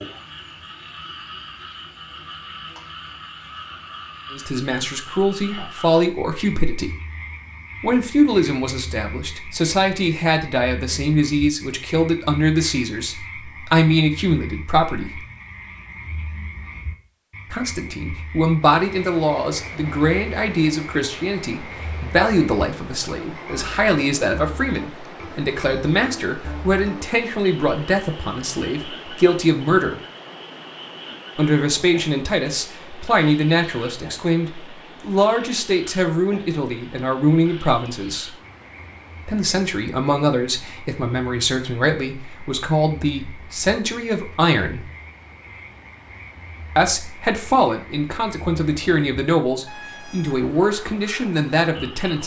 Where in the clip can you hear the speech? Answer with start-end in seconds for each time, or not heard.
4.3-6.9, 7.8-15.2, 17.5-30.0, 31.4-38.3, 39.2-44.9, 46.8-52.2.